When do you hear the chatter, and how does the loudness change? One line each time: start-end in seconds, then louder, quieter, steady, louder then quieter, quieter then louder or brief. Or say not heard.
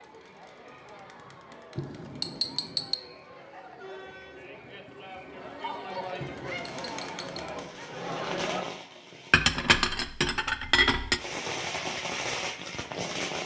0.0-8.7 louder.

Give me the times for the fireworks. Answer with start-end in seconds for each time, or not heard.
6.4-9.5, 11.2-13.4.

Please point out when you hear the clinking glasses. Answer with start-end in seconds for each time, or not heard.
1.8-3.0, 6.2-7.4, 9.3-11.2.